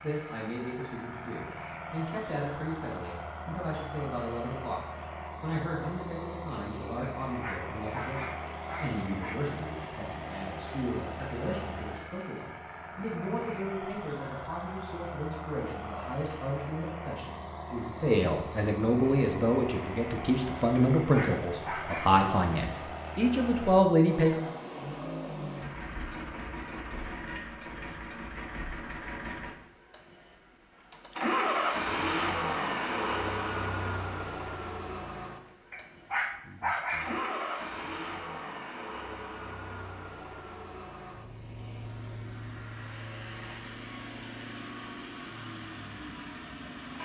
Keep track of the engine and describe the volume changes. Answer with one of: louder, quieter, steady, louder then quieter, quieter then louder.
louder then quieter.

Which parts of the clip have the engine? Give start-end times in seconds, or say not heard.
0.0-47.0.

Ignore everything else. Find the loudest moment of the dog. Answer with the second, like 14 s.
37 s.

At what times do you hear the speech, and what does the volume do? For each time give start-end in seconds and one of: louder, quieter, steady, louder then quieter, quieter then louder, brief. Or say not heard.
0.0-24.5 louder.